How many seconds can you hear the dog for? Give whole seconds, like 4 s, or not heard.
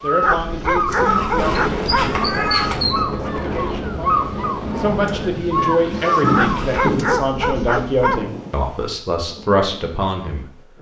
4 s.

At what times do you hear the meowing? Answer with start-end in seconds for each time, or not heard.
1.1-2.8, 6.2-7.0.